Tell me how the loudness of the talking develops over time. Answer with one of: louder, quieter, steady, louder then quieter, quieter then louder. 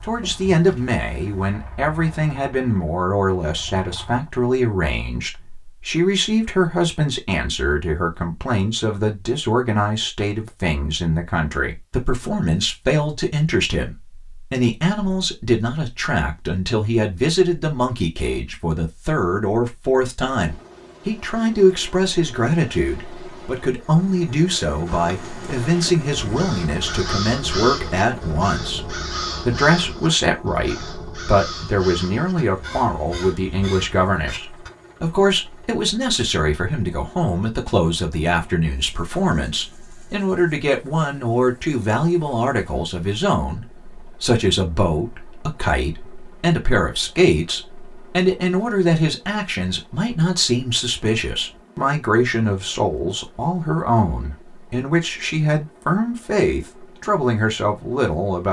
steady.